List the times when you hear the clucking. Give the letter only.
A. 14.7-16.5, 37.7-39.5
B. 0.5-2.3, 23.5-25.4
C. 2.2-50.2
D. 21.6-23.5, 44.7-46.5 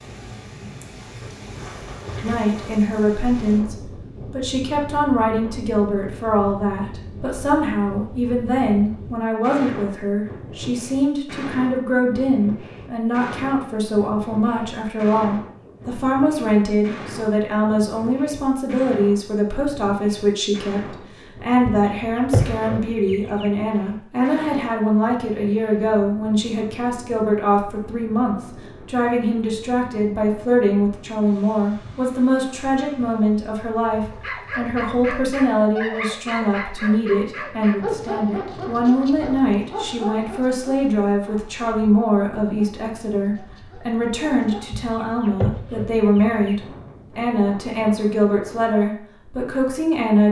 D.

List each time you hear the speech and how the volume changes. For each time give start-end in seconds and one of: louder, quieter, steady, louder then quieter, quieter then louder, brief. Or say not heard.
2.2-50.2 steady.